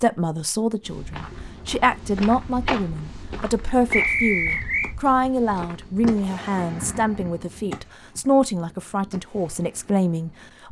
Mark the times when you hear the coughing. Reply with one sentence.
You can't hear the coughing here.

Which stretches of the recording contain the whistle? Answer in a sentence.
The whistle can be heard from 3.9 to 4.9 s.